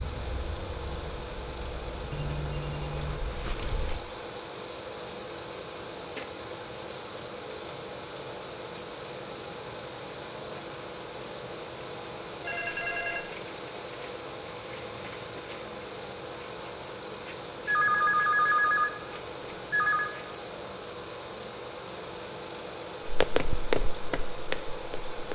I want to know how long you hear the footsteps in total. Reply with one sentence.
The footsteps can be heard for 2 seconds in total.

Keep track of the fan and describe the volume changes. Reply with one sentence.
The loudness of the fan stays about the same.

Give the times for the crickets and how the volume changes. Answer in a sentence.
The crickets can be heard from 0.0 to 25.3 s, getting quieter.